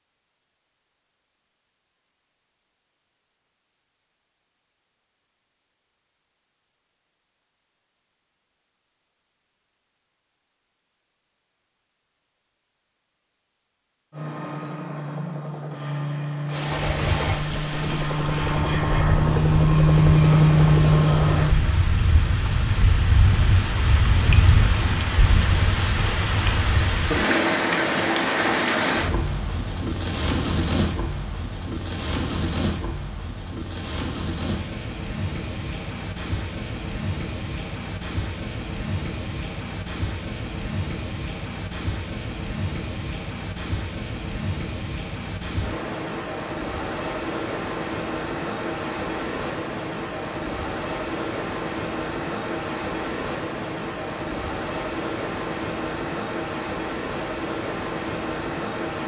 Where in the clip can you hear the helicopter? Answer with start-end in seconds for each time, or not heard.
14.1-21.6.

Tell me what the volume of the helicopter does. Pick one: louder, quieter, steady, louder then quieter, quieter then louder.
louder.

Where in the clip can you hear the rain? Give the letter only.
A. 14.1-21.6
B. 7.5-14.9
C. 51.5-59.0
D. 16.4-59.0
D.